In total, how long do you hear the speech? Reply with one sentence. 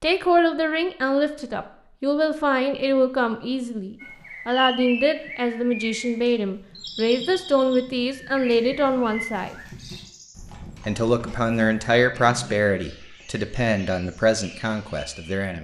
The speech can be heard for 14 seconds in total.